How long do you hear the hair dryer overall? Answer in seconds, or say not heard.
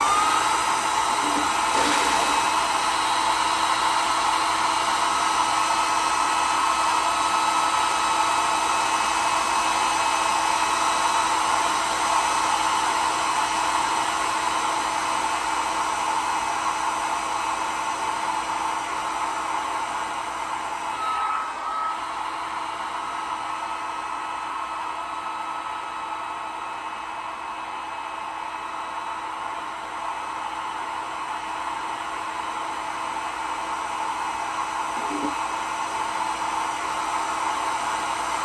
38 s.